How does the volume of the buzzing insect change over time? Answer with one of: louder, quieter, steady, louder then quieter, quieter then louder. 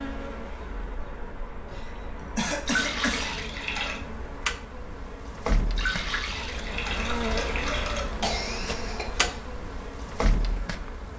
louder.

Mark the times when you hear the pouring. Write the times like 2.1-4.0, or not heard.
2.6-4.0, 5.8-8.1.